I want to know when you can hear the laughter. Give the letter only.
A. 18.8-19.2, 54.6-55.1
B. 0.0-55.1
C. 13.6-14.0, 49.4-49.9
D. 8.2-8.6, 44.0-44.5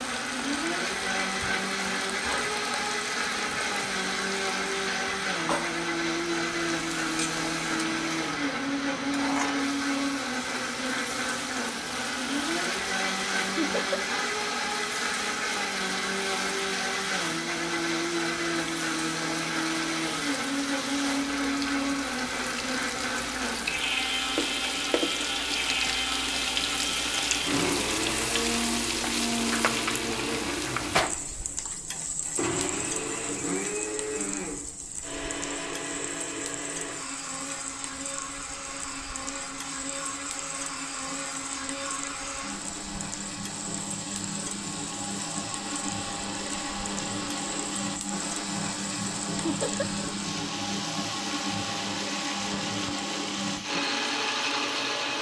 C.